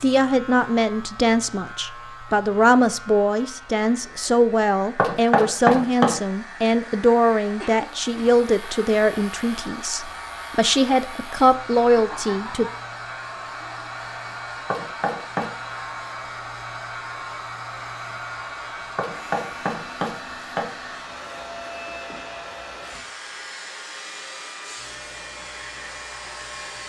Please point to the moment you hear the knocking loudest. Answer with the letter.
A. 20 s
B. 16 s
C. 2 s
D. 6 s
D.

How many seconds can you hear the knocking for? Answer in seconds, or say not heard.
4 s.